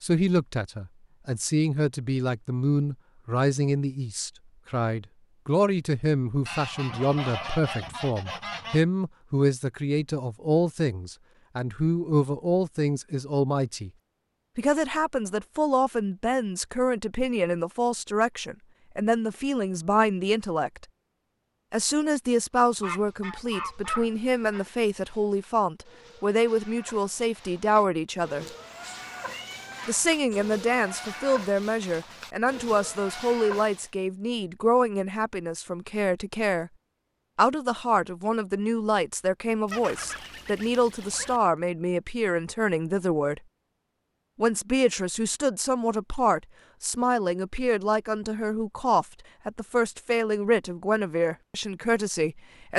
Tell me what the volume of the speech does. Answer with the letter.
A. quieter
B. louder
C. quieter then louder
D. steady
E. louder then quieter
D.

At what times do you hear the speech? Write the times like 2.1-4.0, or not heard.
0.0-13.9, 14.6-20.9, 21.7-28.4, 29.9-36.7, 37.4-43.4, 44.4-52.7.